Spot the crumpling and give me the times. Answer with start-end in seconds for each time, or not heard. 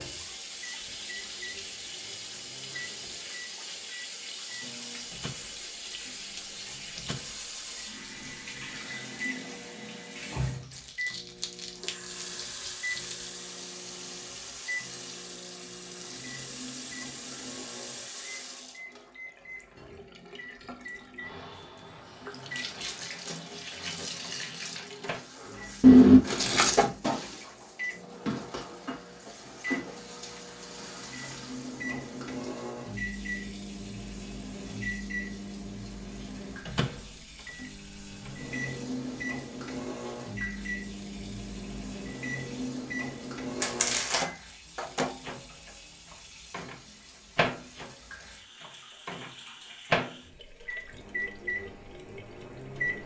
10.7-13.3, 25.8-26.9, 43.6-44.2.